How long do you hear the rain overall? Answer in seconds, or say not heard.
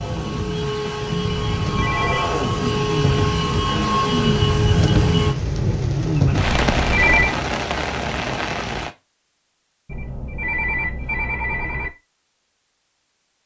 9 s.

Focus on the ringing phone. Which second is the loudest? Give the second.
7 s.